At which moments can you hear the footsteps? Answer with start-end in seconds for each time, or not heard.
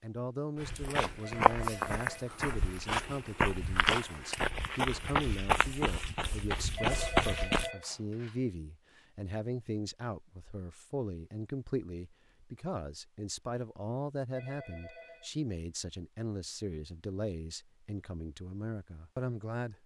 0.6-7.7.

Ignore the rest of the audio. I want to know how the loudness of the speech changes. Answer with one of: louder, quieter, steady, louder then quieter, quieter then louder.
steady.